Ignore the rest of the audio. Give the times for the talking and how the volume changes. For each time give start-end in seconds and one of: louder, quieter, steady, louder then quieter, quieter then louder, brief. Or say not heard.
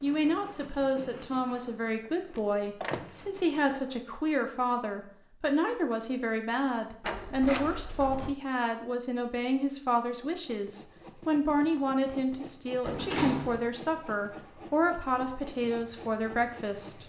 0.0-17.0 steady.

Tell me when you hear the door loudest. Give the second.
13 s.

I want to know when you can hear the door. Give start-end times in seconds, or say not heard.
2.0-3.2, 7.0-8.3, 12.8-13.7.